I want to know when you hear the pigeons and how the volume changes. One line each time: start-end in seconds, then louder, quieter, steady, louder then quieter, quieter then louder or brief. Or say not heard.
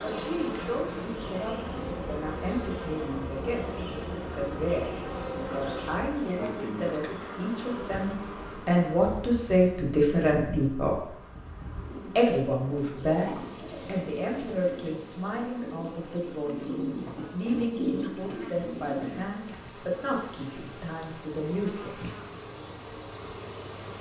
11.8-19.3 louder.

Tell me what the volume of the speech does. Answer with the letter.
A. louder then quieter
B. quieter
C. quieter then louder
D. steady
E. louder
A.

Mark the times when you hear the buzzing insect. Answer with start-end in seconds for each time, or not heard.
0.0-23.9.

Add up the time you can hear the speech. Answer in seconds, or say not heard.
21 s.